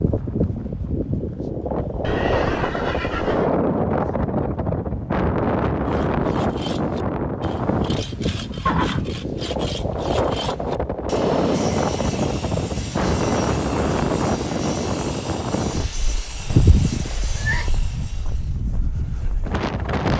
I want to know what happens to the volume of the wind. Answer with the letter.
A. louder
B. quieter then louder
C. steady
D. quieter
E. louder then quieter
D.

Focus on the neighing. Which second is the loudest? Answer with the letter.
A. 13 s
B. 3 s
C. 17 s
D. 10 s
C.